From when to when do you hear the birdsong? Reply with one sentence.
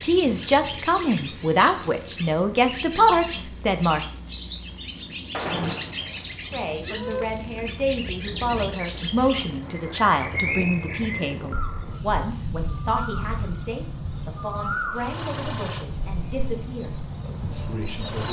You can hear the birdsong from 0.0 to 18.2 s.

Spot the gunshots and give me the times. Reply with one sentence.
The gunshots can be heard from 5.3 to 7.2 s.